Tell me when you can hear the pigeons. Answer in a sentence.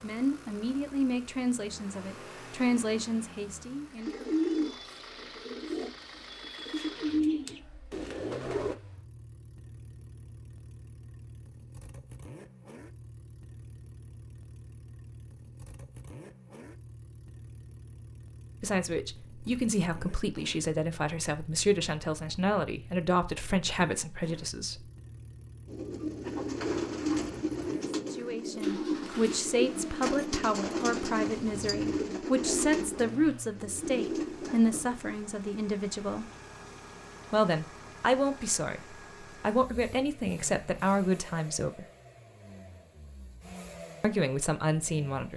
The pigeons can be heard from 4.0 to 8.8 s and from 25.6 to 34.6 s.